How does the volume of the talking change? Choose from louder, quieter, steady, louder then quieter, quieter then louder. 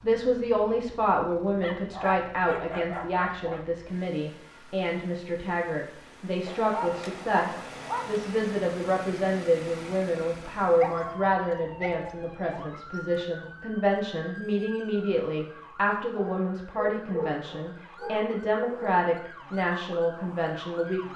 steady.